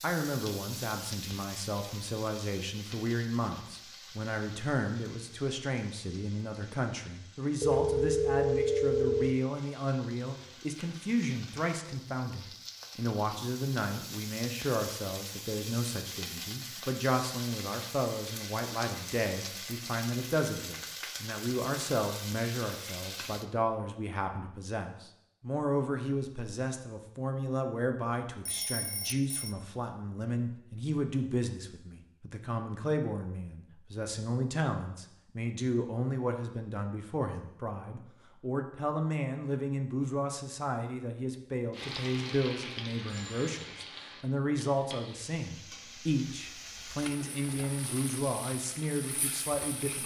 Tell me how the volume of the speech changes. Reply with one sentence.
The volume of the speech stays about the same.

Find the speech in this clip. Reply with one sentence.
You can hear the speech from 0.0 to 50.0 s.